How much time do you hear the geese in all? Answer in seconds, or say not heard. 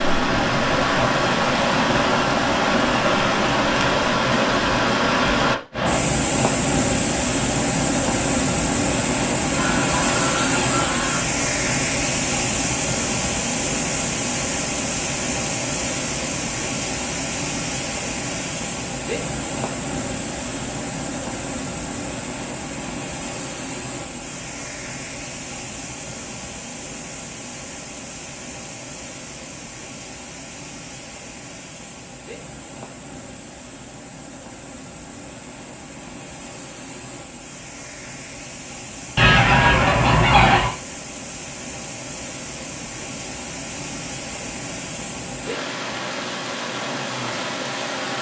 3 s.